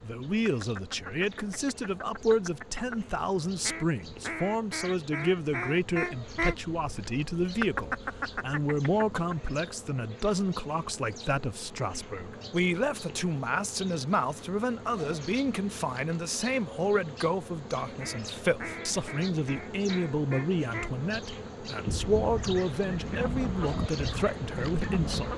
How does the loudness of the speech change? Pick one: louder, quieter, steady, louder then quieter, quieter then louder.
steady.